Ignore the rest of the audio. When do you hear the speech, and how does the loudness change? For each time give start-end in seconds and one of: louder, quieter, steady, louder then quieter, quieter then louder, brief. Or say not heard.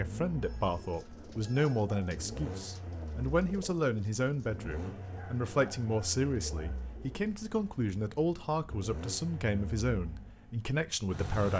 0.0-11.5 steady.